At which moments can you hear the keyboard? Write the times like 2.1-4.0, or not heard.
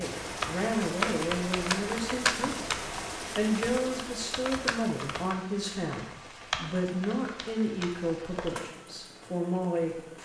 0.2-8.6.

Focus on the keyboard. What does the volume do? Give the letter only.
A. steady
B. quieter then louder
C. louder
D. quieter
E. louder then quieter
D.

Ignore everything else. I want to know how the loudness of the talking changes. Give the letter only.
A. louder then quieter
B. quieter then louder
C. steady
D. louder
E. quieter
C.